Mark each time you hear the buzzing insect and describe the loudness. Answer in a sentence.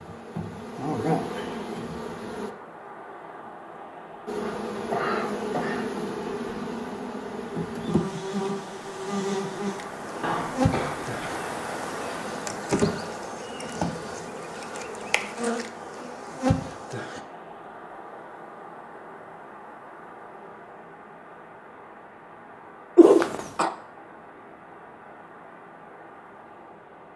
The buzzing insect can be heard briefly from 0.0 to 2.5 s; and from 4.2 to 17.2 s, at a steady volume.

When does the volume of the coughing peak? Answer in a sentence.
The volume of the coughing peaks at 23 seconds.